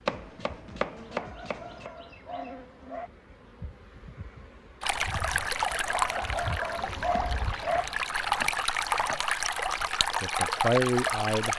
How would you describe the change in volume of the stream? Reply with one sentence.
The volume of the stream goes down, then up.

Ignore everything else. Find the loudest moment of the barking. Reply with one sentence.
The loudest moment of the barking is at 7 seconds.